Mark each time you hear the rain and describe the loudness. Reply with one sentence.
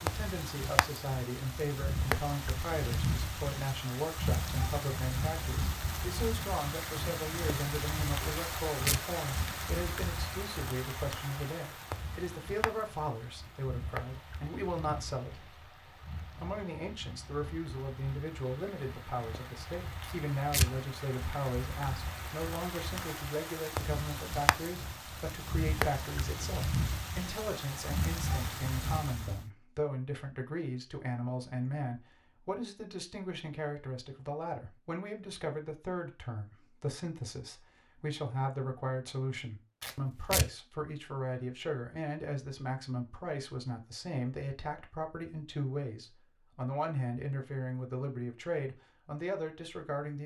You can hear the rain from 0.0 to 29.4 s, getting quieter then louder.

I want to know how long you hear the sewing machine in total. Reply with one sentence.
You can't hear the sewing machine here.